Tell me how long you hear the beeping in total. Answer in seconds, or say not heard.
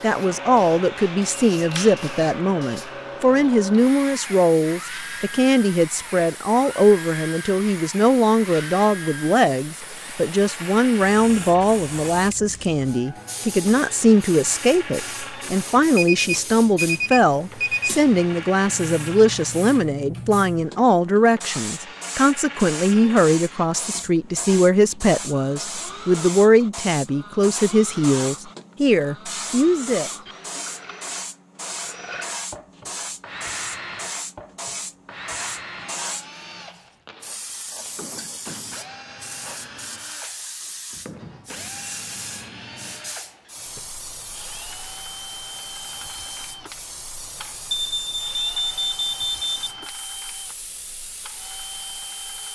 4 s.